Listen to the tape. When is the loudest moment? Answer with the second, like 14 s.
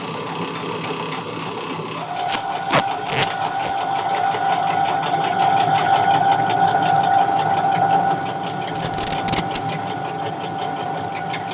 3 s.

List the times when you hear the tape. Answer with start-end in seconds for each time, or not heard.
2.2-3.8, 8.7-9.6.